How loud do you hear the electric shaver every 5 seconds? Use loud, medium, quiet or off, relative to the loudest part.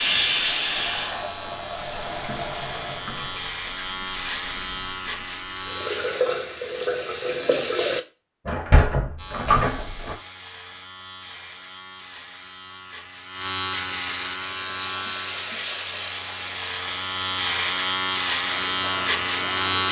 medium, medium, medium, loud.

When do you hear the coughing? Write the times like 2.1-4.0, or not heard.
not heard.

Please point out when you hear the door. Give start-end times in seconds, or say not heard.
8.4-10.2.